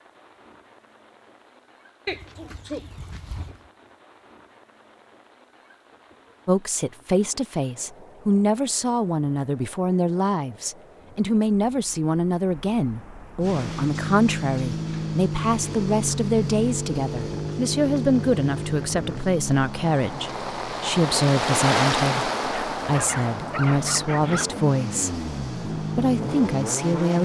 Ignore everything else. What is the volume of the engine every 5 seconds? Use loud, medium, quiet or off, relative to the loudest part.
off, off, loud, loud, medium, loud.